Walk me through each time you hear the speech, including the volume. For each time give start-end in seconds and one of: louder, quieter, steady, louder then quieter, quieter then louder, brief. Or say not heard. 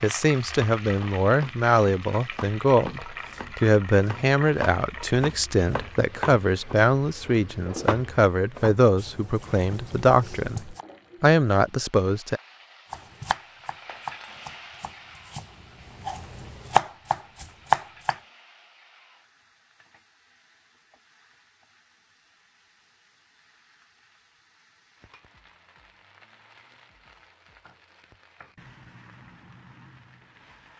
0.0-12.4 steady.